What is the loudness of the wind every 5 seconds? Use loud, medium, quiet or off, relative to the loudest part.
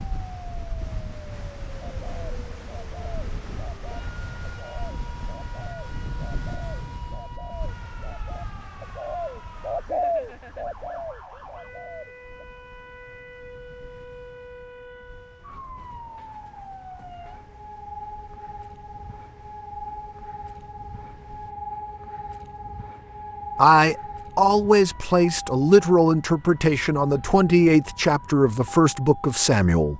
loud, loud, quiet, quiet, quiet, off.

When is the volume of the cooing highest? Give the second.
10 s.